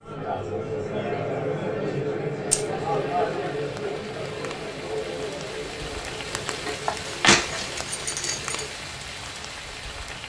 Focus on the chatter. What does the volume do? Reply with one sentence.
The loudness of the chatter goes down.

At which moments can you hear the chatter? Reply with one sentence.
The chatter can be heard from 0.0 to 8.7 s.